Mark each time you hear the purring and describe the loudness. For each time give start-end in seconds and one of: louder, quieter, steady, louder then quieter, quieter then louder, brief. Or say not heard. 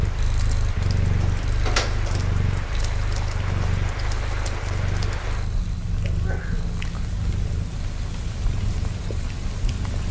0.0-10.0 quieter.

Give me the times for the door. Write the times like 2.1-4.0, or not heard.
1.0-2.3.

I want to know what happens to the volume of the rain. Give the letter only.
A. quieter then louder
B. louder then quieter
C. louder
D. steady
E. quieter
D.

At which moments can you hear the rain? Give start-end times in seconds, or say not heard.
0.0-10.0.